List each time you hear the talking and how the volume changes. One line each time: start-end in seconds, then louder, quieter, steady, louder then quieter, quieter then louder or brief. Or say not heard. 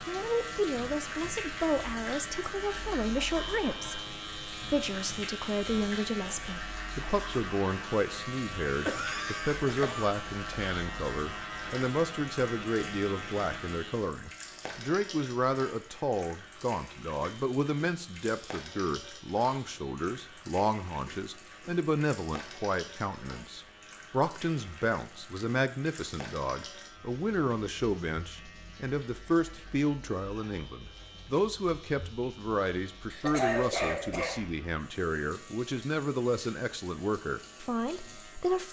0.1-38.6 steady.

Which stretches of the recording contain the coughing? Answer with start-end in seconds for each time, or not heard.
8.8-10.6, 33.1-34.5.